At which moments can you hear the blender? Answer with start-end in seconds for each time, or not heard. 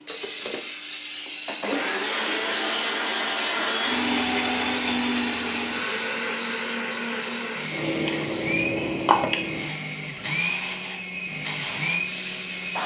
0.0-12.8.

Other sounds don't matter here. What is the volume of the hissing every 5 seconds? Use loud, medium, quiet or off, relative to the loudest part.
loud, loud, medium.